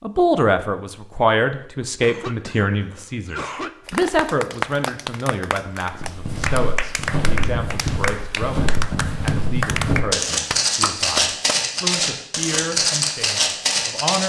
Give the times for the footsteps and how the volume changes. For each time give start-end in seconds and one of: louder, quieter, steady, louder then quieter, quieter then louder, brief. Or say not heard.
5.9-14.2 louder.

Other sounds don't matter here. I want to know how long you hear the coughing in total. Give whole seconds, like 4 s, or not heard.
2 s.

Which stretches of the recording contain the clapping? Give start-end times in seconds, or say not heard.
3.9-11.6.